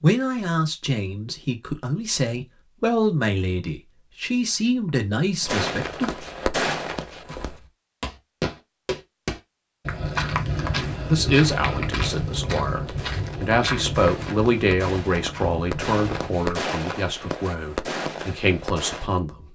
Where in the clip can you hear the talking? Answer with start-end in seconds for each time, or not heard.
0.0-6.1, 10.9-19.4.